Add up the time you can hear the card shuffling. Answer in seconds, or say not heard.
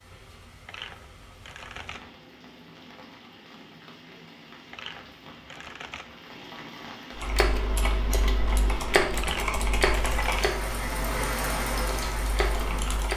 4 s.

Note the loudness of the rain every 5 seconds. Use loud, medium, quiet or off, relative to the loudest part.
quiet, medium, loud.